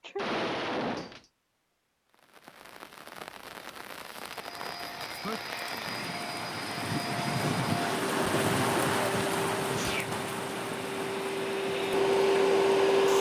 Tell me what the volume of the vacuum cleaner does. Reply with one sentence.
The loudness of the vacuum cleaner goes up.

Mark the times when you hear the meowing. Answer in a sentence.
The meowing can be heard from 0.1 to 1.2 s.